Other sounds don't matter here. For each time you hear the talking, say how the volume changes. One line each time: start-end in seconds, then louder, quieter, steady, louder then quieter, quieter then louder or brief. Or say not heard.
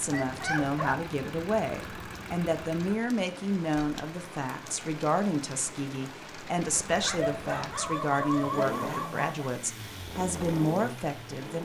0.0-11.6 steady.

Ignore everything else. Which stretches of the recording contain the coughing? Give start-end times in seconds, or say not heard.
not heard.